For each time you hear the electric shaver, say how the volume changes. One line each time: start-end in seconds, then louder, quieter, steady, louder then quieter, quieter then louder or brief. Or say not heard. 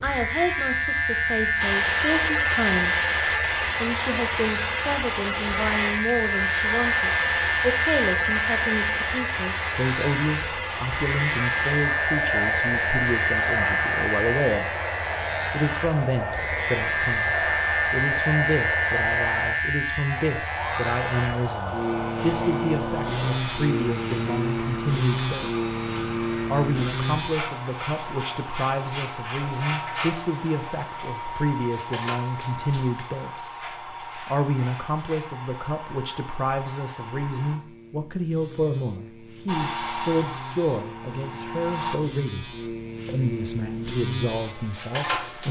0.0-45.4 quieter.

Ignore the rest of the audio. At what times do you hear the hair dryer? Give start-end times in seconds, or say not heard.
1.6-37.6, 39.5-42.0.